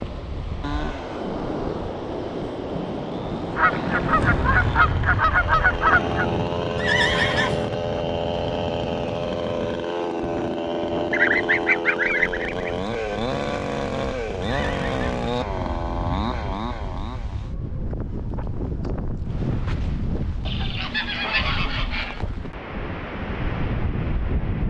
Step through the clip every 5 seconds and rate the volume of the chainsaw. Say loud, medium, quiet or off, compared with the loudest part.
medium, loud, loud, loud, off.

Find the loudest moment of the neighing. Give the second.
7 s.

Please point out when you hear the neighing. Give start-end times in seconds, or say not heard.
6.8-7.7, 14.4-15.1.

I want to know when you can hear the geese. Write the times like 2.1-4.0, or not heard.
3.5-6.2, 11.1-12.7, 20.4-22.2.